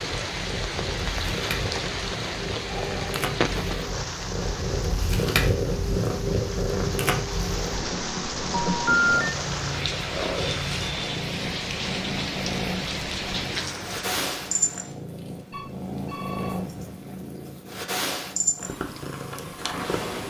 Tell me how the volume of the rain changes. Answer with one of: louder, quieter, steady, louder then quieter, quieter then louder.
steady.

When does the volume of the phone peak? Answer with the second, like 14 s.
9 s.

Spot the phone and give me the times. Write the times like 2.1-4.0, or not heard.
2.6-3.2, 8.5-9.3, 15.5-16.6.